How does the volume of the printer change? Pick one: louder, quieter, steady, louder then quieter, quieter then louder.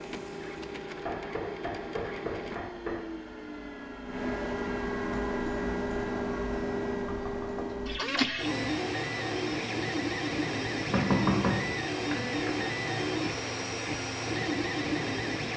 louder.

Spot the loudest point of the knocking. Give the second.
11 s.